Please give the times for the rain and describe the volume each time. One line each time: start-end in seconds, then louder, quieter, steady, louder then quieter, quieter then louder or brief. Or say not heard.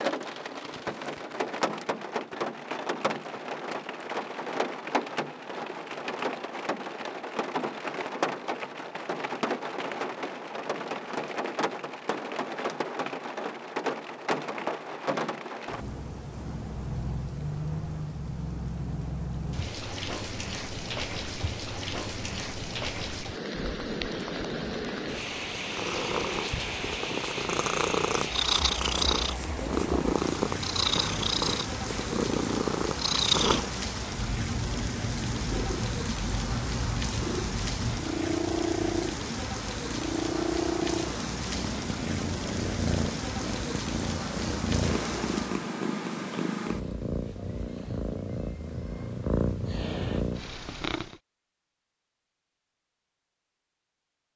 0.0-45.7 steady.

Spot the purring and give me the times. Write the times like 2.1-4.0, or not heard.
25.7-51.2.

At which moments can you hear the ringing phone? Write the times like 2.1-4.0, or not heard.
not heard.